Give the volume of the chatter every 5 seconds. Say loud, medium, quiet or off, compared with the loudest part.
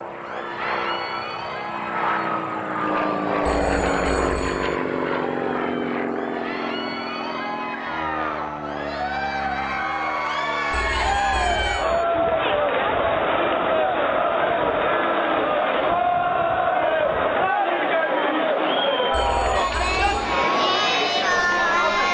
quiet, medium, loud, loud, loud.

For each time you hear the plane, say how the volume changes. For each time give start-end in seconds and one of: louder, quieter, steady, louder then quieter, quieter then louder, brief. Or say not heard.
0.0-22.0 quieter.